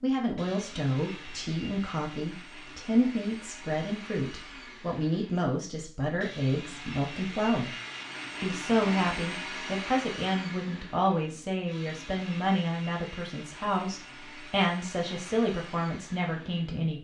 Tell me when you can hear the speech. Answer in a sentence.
You can hear the speech from 0.0 to 7.8 s and from 8.4 to 16.9 s.